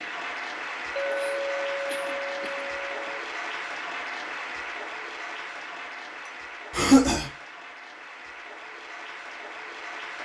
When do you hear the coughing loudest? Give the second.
7 s.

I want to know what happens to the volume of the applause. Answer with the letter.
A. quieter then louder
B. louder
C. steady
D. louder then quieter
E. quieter
E.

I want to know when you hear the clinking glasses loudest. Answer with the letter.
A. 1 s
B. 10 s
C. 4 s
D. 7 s
A.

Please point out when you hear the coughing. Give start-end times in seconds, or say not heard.
1.2-3.1, 6.7-7.3.